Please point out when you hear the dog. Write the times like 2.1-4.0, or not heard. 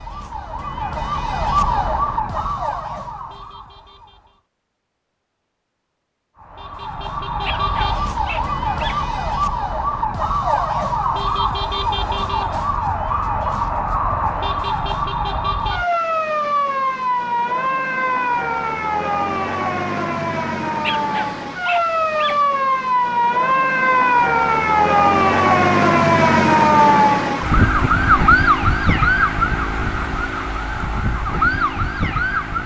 7.4-9.1, 20.8-22.4.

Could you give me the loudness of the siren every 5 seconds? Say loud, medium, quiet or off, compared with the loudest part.
medium, medium, medium, medium, loud, loud, medium.